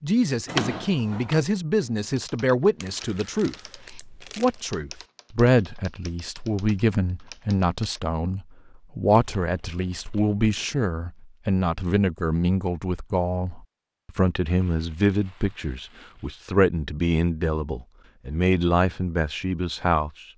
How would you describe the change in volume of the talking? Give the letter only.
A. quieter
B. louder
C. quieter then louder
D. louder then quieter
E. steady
E.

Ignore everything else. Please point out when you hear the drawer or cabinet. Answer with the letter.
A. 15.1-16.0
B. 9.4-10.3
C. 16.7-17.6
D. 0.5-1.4
D.